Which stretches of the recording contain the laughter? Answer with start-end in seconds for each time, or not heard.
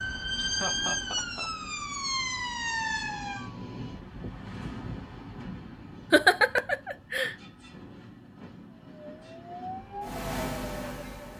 0.3-1.5, 6.1-7.3.